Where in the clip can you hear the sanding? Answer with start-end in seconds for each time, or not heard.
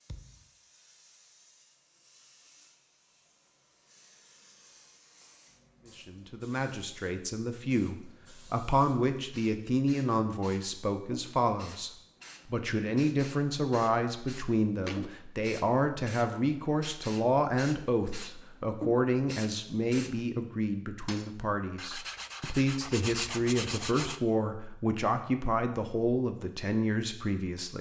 21.8-24.2.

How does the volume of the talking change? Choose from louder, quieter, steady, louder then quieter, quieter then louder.
steady.